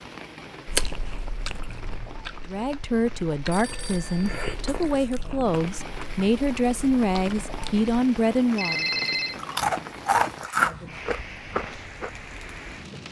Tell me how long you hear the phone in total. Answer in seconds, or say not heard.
2 s.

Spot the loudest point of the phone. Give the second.
9 s.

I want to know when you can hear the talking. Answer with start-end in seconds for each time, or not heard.
2.5-8.9.